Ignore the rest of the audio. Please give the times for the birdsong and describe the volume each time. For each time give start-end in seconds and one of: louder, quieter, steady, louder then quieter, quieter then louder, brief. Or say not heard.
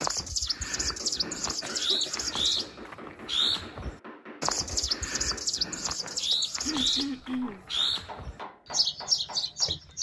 0.0-9.9 steady.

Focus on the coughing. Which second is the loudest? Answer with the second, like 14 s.
7 s.